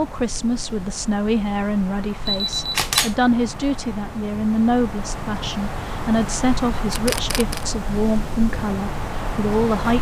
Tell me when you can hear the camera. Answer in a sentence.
The camera can be heard from 2.2 to 3.1 s and from 6.9 to 7.7 s.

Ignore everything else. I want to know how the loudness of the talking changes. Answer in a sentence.
The volume of the talking stays about the same.